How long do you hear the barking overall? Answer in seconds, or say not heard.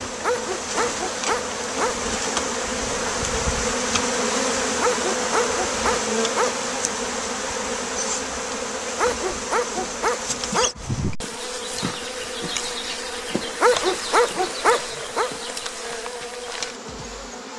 7 s.